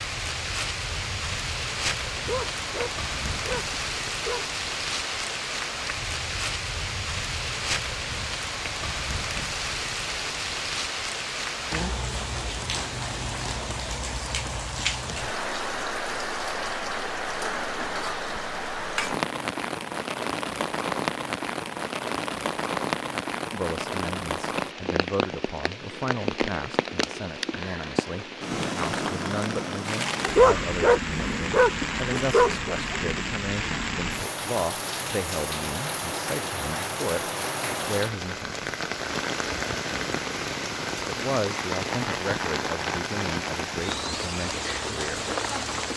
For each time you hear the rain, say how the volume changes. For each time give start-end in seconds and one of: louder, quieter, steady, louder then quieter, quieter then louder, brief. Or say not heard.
0.0-45.9 steady.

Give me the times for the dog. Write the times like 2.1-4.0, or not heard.
2.1-4.5, 30.2-33.1.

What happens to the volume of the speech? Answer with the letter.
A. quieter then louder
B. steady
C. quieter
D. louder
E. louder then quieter
B.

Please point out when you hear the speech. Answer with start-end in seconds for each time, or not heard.
23.5-38.7, 41.0-45.2.